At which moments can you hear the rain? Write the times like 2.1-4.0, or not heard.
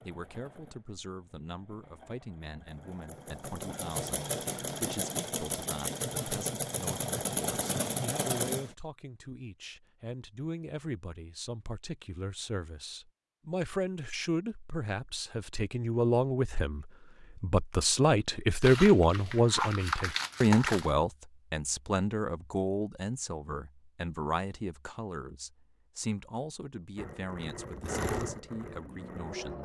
not heard.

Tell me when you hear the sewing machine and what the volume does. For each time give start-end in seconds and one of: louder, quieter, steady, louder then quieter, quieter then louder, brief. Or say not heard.
0.0-8.7 louder
26.9-29.5 brief.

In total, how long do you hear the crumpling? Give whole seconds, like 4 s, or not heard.
2 s.